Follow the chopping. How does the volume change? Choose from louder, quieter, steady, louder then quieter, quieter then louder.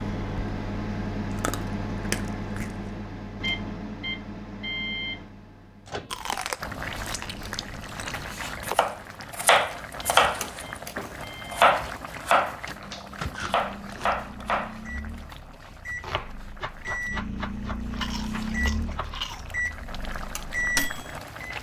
quieter.